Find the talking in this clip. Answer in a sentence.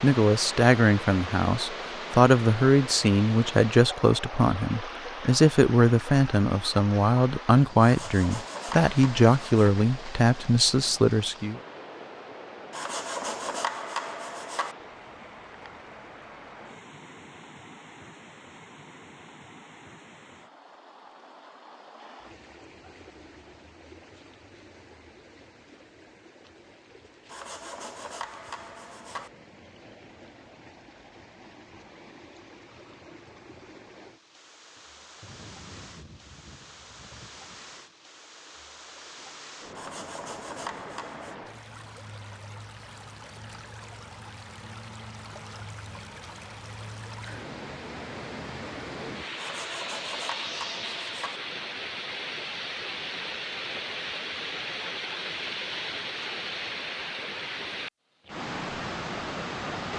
The talking can be heard from 0.0 to 11.6 s.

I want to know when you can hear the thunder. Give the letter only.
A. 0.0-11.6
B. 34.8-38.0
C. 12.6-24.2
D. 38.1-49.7
B.